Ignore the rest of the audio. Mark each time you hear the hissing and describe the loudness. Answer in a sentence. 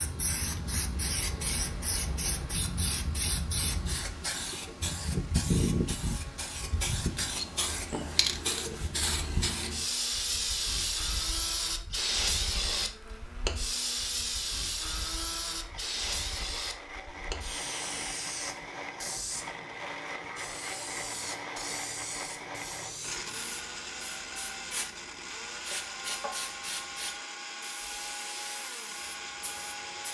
You can hear the hissing from 0.0 to 30.0 s, getting quieter.